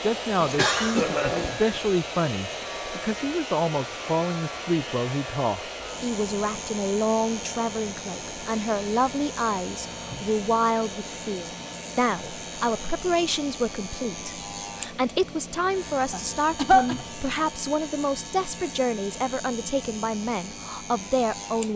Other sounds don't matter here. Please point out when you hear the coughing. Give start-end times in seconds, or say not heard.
0.4-1.6, 16.1-16.9.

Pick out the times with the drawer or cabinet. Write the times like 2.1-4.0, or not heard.
not heard.